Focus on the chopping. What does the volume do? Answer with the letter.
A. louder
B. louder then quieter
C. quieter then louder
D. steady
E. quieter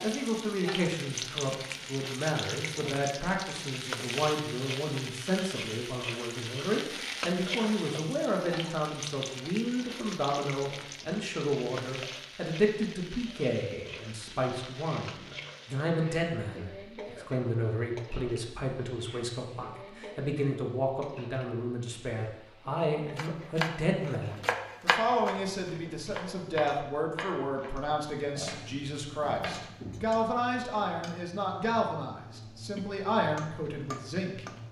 E.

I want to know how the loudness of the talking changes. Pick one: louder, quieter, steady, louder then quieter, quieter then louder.
steady.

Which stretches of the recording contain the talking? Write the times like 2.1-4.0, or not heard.
0.0-34.6.